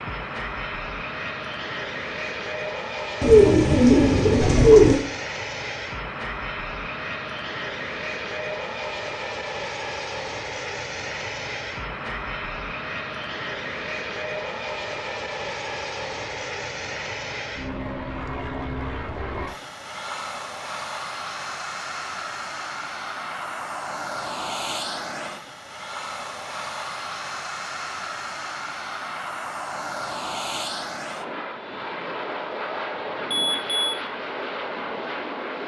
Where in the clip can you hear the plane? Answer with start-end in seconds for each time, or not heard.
0.0-35.6.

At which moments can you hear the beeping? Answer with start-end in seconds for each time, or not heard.
33.3-34.0.